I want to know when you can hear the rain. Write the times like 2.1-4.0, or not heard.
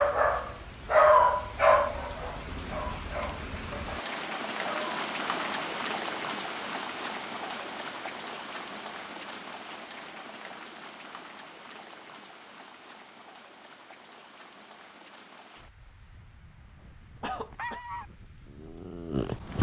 0.0-19.5.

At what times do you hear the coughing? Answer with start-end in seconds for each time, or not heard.
17.2-17.8.